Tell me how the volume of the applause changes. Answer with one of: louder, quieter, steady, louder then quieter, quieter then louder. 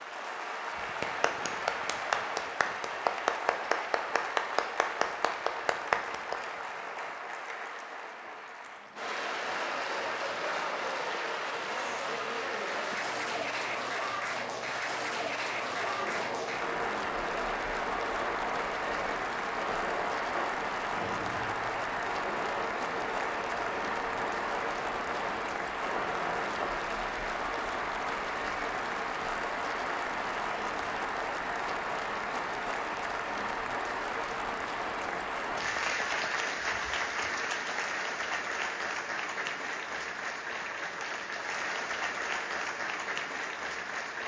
steady.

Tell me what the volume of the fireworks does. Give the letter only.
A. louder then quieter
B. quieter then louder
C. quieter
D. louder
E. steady
E.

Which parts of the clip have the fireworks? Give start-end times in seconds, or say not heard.
15.7-26.8.